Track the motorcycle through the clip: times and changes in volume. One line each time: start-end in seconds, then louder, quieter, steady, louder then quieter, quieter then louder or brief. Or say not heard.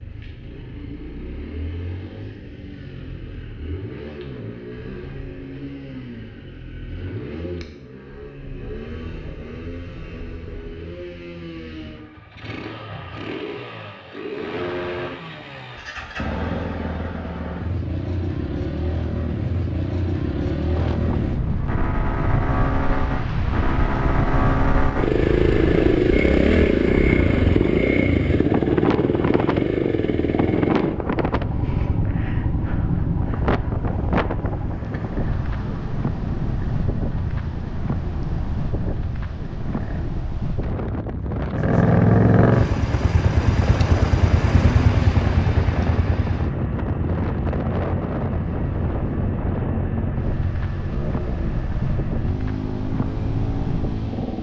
0.0-40.2 louder then quieter
41.5-54.3 quieter.